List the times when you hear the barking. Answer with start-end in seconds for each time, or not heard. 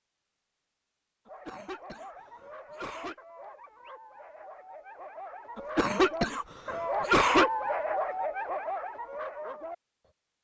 1.2-10.1.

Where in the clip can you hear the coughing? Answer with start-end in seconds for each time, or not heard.
1.2-3.1, 5.5-7.5.